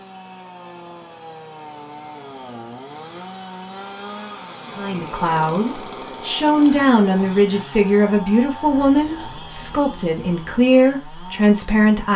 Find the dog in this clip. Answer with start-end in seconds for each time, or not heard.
not heard.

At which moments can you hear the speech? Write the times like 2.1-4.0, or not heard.
4.8-12.1.